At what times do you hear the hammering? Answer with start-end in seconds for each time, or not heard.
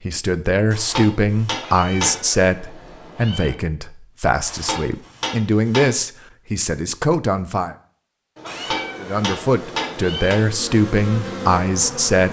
0.7-2.1, 4.4-5.9, 8.4-10.4.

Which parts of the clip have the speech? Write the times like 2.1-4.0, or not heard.
0.1-7.8, 9.0-12.2.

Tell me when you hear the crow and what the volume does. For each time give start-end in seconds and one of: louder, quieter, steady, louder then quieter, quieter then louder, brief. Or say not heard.
not heard.